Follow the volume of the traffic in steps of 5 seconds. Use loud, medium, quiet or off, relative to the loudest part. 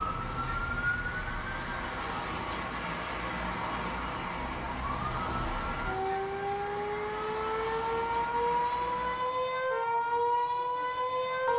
loud, loud, off.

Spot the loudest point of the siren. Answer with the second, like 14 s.
10 s.